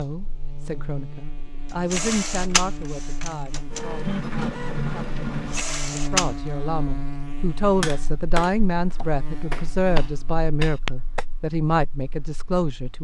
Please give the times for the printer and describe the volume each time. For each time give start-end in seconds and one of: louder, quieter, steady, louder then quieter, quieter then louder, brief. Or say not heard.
1.6-6.3 quieter then louder.